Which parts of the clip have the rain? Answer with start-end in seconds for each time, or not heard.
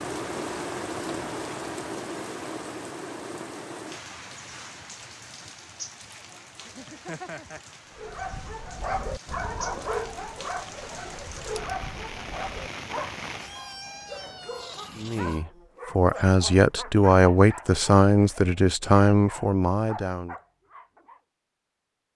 0.0-13.6.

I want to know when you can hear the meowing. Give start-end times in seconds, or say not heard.
6.7-7.6, 13.3-15.4.